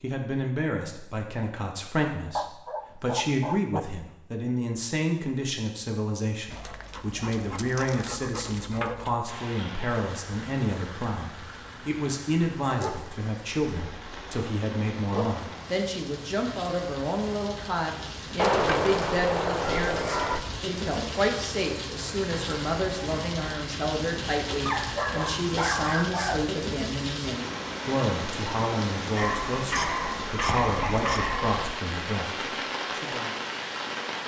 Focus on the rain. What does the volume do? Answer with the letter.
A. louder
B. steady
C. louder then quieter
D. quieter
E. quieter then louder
A.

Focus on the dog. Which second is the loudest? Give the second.
19 s.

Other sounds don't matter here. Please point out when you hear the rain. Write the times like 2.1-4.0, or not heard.
9.2-34.2.